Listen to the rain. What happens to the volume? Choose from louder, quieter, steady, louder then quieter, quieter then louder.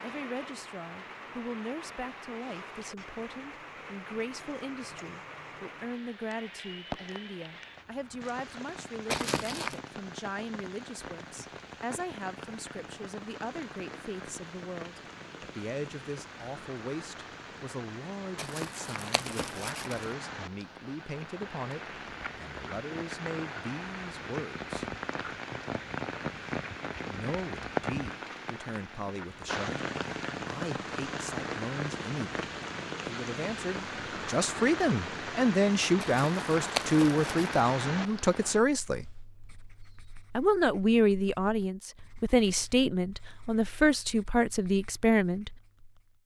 louder.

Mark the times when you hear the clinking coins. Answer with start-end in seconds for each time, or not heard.
not heard.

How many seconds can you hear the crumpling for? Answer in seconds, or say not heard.
4 s.